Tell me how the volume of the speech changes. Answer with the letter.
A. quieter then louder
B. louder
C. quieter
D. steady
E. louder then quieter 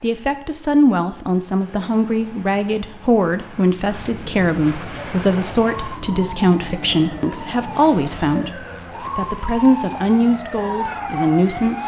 D.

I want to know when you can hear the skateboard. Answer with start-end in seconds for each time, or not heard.
not heard.